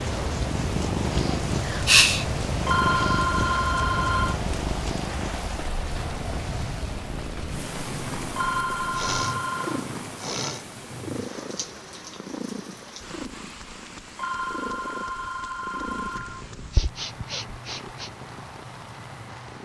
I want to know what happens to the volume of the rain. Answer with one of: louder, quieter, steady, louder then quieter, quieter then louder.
quieter.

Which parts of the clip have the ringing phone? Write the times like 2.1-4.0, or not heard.
2.6-4.4, 8.3-9.8, 14.2-16.4.